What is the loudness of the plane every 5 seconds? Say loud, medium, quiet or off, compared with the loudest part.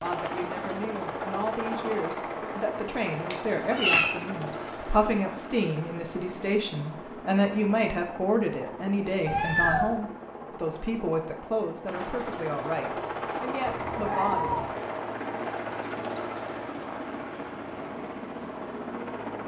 loud, medium, loud, loud.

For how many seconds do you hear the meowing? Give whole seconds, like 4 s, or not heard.
3 s.